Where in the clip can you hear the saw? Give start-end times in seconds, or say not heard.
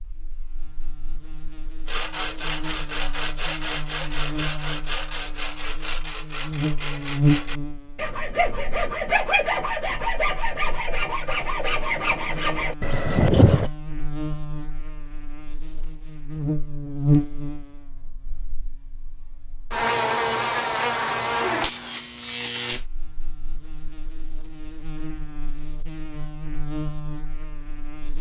1.9-13.7.